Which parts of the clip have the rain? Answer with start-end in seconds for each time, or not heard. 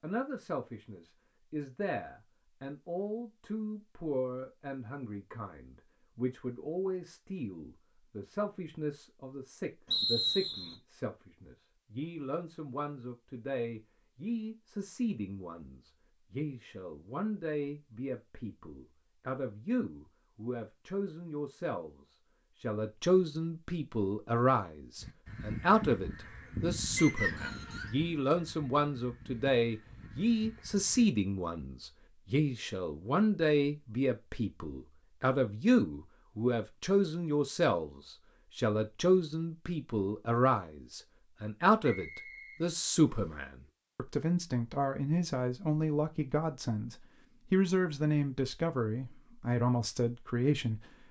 not heard.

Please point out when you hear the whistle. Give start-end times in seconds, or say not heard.
9.9-10.8, 26.9-27.9, 41.8-43.4.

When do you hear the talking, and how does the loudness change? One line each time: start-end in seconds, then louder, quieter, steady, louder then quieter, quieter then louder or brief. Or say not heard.
0.0-50.8 louder.